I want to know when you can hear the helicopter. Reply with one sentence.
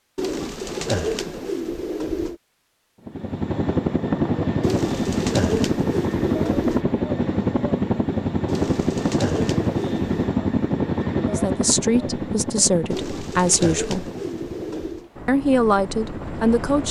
You can hear the helicopter from 3.0 to 16.8 s.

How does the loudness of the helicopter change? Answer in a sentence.
The volume of the helicopter goes down.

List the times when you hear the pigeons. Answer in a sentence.
You can hear the pigeons from 0.1 to 2.4 s, from 4.6 to 6.8 s, from 8.4 to 10.3 s and from 12.9 to 15.1 s.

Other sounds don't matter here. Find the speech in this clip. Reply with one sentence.
The speech can be heard from 11.2 to 14.1 s and from 15.2 to 16.8 s.